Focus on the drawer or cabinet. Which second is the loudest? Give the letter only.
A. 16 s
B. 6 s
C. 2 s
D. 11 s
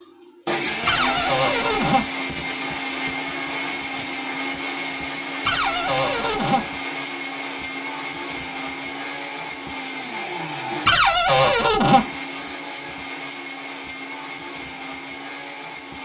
D.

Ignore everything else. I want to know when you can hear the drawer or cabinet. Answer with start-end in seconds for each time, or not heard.
0.8-2.0, 5.5-6.7, 10.8-12.1.